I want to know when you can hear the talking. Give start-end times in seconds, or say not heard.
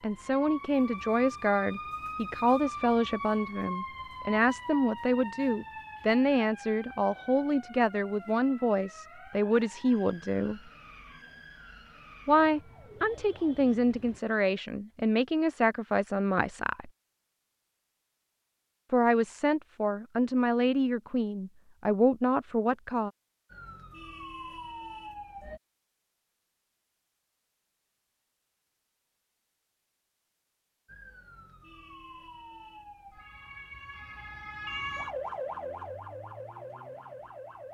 0.0-10.6, 12.2-16.9, 18.9-23.1.